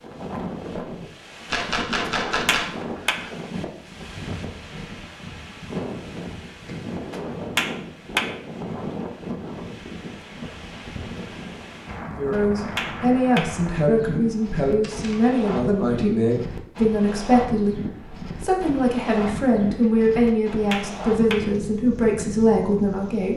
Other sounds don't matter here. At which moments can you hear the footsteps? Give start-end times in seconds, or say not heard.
not heard.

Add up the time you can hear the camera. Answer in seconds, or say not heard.
2 s.